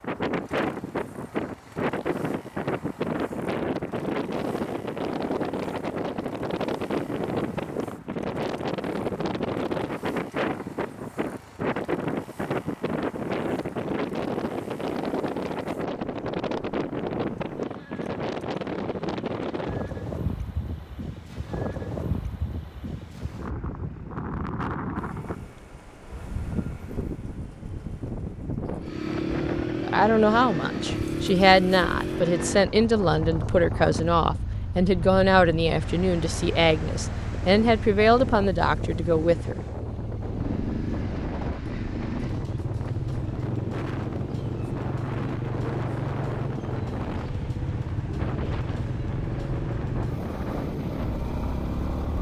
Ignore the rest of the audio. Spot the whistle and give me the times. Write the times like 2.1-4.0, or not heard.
not heard.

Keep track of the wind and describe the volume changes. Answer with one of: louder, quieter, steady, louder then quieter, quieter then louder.
quieter.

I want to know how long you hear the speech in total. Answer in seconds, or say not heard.
10 s.